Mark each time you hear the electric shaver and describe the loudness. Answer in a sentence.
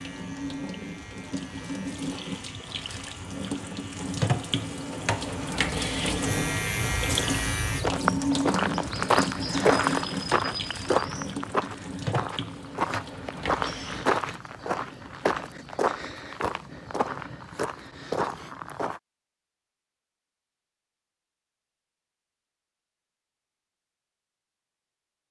You can hear the electric shaver from 0.0 to 7.9 s, getting louder.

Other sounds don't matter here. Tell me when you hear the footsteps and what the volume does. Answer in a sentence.
The footsteps can be heard from 7.2 to 19.0 s, getting quieter.